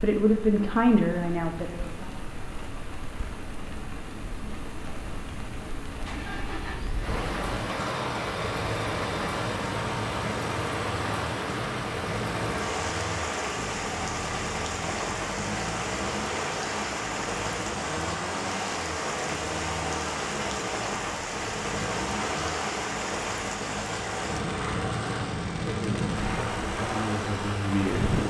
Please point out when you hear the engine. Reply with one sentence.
You can hear the engine from 5.8 to 28.2 s.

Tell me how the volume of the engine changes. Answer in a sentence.
The volume of the engine stays about the same.